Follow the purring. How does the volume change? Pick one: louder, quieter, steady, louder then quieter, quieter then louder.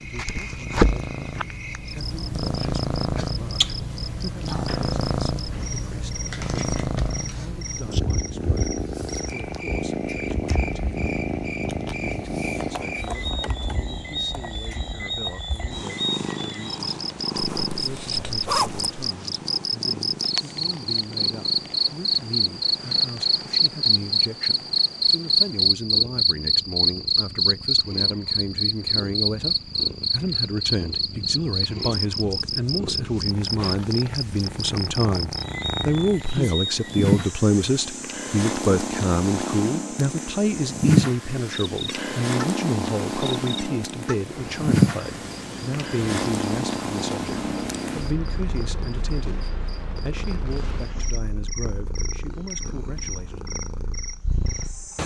quieter then louder.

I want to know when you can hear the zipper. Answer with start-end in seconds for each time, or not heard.
17.4-19.0.